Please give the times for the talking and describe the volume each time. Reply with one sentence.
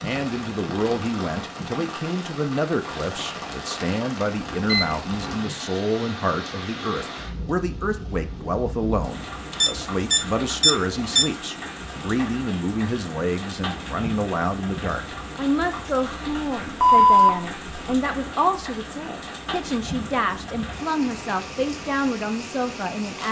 The talking can be heard from 0.0 to 23.2 s, at a steady volume.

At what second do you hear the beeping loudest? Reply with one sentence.
The loudest moment of the beeping is at 17 seconds.